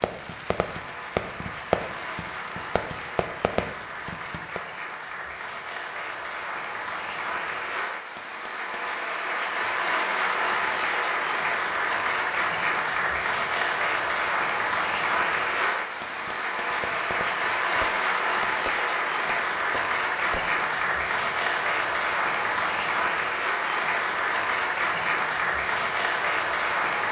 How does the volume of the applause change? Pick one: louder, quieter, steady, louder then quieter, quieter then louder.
louder.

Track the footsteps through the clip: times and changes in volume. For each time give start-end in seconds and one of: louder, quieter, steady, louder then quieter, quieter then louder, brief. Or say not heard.
not heard.